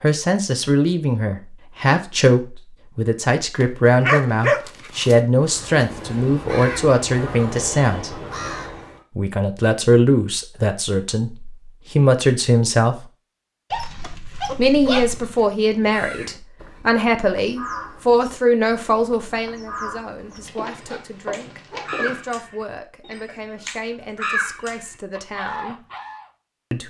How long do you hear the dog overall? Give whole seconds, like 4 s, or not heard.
5 s.